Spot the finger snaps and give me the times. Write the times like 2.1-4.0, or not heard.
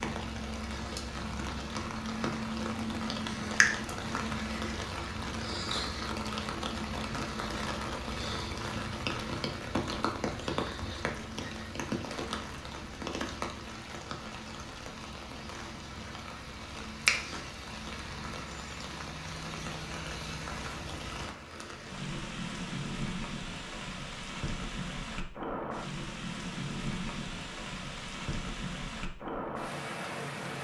3.6-4.2.